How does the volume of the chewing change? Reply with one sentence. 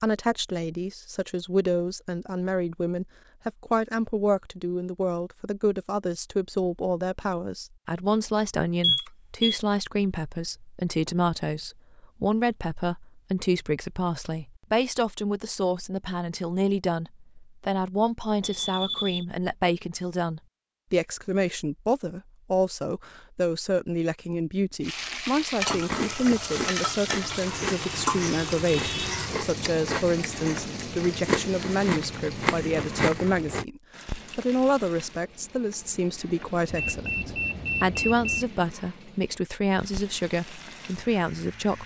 The volume of the chewing goes up.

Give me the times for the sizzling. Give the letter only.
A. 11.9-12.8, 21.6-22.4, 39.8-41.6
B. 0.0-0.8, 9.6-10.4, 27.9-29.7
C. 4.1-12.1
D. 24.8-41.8
D.